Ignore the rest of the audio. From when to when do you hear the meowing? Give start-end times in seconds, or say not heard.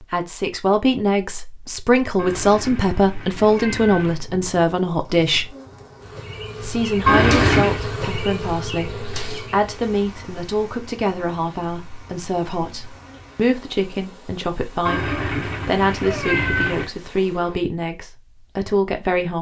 2.1-4.2, 7.0-7.8, 14.8-16.9.